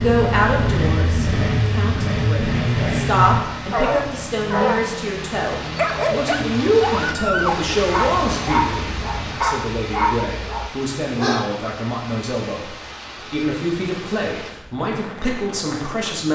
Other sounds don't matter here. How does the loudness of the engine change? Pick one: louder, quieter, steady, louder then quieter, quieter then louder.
quieter.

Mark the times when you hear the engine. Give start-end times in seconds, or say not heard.
0.0-9.4.